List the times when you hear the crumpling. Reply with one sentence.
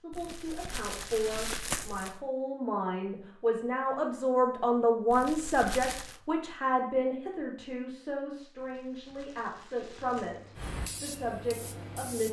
You can hear the crumpling from 0.1 to 2.2 s, from 5.1 to 6.2 s and from 8.6 to 10.6 s.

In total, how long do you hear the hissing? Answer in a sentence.
You can hear the hissing for 2 seconds altogether.